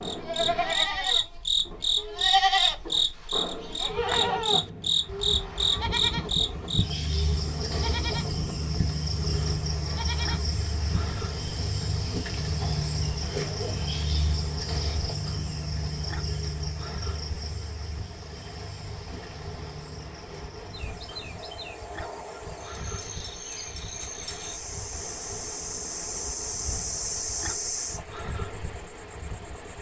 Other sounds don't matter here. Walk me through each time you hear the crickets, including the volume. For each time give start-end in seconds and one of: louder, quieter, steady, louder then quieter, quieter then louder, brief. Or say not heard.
0.0-29.7 quieter then louder.